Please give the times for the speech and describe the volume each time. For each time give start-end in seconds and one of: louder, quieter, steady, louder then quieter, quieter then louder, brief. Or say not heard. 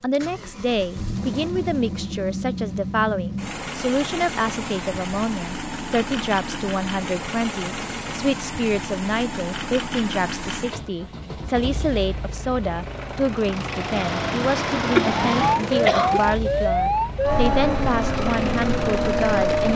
0.0-19.7 steady.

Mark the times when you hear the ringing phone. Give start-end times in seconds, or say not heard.
not heard.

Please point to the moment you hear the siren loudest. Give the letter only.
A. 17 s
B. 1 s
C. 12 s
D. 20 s
A.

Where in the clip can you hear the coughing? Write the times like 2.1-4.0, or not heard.
14.9-16.2.